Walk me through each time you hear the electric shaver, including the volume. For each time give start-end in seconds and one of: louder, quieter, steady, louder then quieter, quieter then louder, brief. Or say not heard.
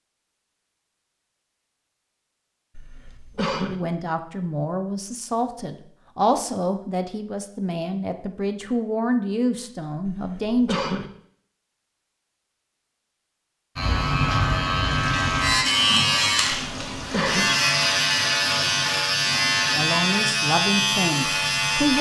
13.8-21.9 steady.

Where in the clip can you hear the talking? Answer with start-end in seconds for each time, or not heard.
3.7-10.8, 19.8-21.9.